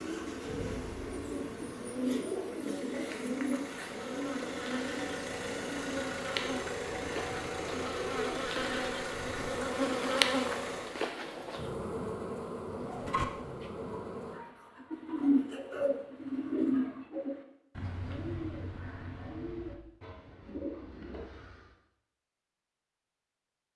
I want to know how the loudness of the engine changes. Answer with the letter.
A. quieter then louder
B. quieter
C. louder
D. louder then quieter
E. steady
C.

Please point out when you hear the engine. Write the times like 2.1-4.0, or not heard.
0.0-11.0.